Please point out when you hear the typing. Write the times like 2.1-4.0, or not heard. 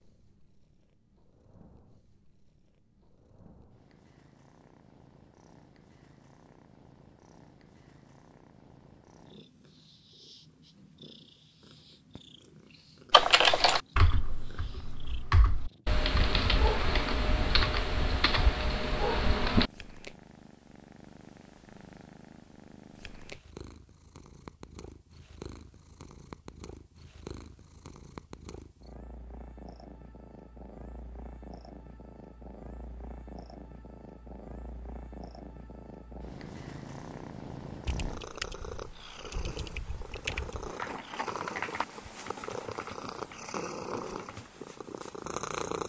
13.1-19.7, 37.9-44.5.